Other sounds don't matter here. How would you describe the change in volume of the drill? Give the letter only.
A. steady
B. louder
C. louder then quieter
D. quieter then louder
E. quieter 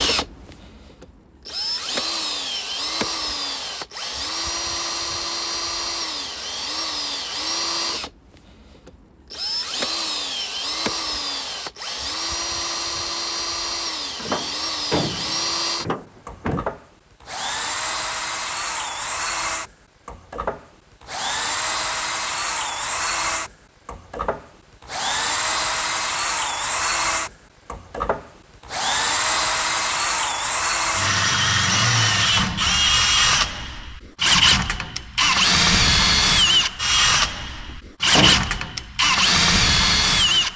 B.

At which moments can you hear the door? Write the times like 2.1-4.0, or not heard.
14.2-16.6, 37.7-38.6.